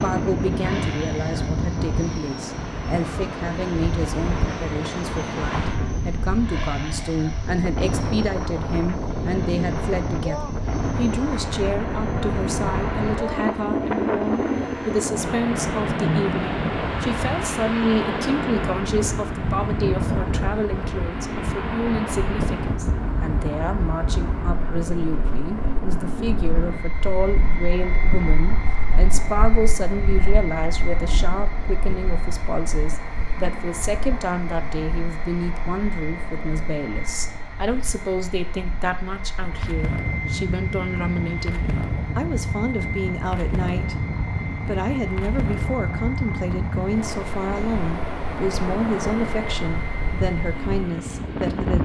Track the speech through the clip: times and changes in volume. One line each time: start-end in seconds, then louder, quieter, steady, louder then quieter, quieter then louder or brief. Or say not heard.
0.0-51.8 steady.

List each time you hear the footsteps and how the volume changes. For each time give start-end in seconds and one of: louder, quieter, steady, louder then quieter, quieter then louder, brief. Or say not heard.
not heard.